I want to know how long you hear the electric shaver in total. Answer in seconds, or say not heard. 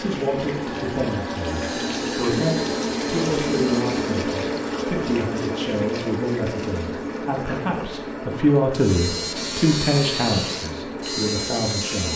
6 s.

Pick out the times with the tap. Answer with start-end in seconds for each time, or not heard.
0.0-12.1.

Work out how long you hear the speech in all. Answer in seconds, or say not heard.
12 s.